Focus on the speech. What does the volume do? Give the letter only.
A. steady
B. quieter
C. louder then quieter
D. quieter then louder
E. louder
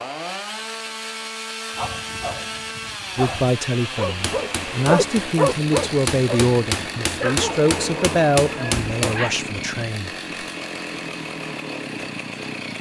C.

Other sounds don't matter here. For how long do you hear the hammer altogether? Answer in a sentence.
The hammer can be heard for 5 seconds in total.